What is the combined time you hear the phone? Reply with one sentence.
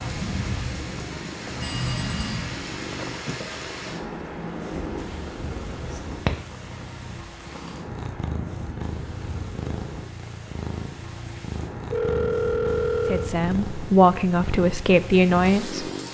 The phone can be heard for 3 seconds in total.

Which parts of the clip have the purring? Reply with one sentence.
You can hear the purring from 0.0 to 16.0 s.